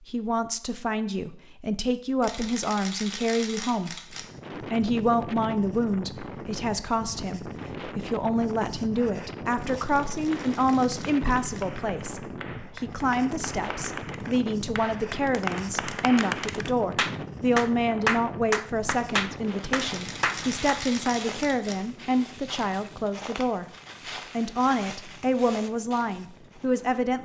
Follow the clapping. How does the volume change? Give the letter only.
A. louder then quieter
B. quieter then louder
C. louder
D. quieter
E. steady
C.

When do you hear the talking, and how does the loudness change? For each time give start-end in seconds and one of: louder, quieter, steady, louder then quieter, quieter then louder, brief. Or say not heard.
0.1-23.6 steady
24.4-27.2 brief.